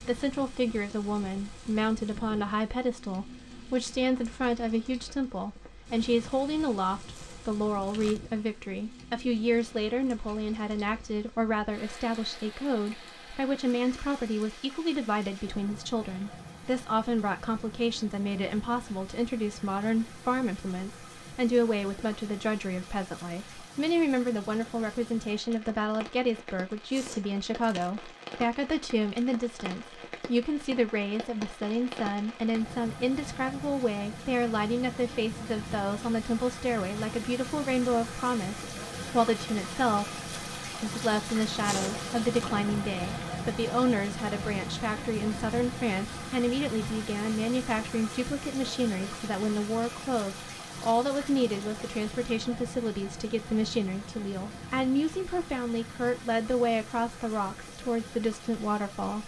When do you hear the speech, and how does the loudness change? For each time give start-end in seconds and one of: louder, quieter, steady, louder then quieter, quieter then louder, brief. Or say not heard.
0.1-59.2 steady.